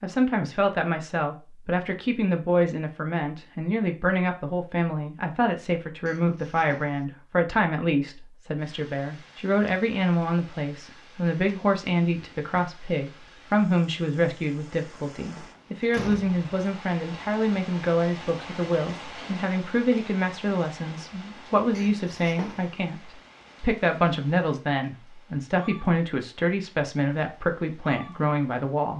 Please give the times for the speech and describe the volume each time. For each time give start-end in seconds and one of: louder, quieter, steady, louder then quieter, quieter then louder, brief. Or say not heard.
0.0-28.9 steady.